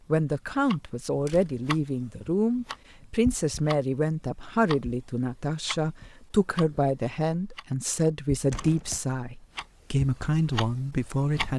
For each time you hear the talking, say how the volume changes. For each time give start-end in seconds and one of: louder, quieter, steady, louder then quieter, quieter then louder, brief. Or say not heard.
0.1-11.5 steady.